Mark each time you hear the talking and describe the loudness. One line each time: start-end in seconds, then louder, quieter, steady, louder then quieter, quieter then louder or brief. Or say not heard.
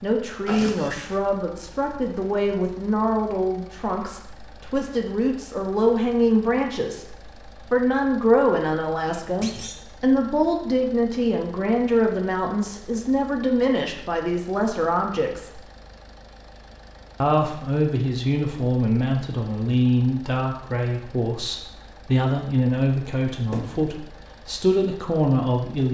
0.0-15.6 steady
17.2-25.8 steady.